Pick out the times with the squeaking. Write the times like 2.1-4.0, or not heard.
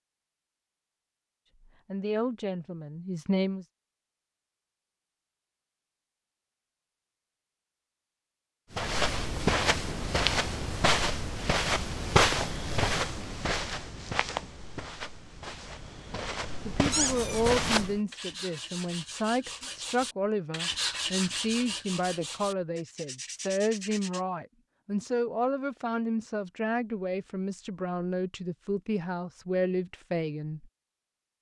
16.9-17.9.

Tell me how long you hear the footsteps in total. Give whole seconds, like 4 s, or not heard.
9 s.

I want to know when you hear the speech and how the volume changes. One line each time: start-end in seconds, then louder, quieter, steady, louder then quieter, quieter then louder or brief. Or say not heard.
1.9-3.6 brief
16.6-30.6 steady.